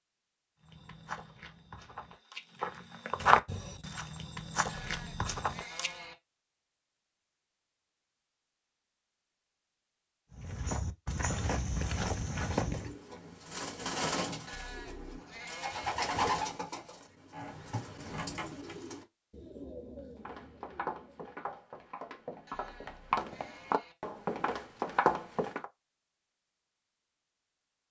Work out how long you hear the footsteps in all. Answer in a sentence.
You can hear the footsteps for 13 seconds altogether.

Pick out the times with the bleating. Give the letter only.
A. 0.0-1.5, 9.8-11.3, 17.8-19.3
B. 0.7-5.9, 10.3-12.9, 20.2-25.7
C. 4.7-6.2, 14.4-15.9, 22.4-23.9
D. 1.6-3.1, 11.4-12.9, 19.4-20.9
C.